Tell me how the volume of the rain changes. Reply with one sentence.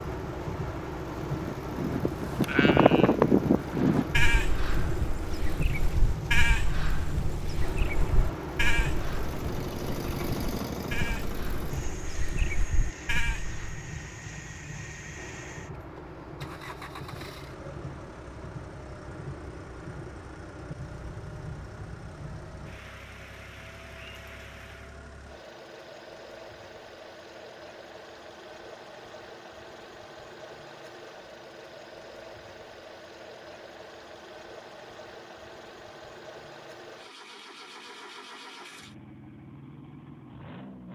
The volume of the rain goes down.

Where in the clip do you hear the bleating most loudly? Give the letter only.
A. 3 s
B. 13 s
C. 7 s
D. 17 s
A.